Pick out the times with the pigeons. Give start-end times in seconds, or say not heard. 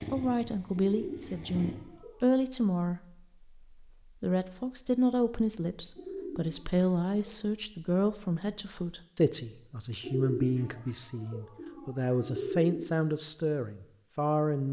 0.7-2.2, 6.0-7.5, 10.0-12.9.